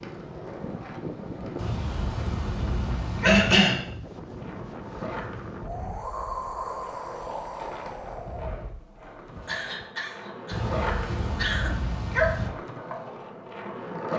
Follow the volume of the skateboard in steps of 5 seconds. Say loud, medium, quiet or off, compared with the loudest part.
medium, medium, loud.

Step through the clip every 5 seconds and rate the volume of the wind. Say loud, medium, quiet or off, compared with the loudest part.
loud, loud, off.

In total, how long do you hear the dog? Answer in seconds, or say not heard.
4 s.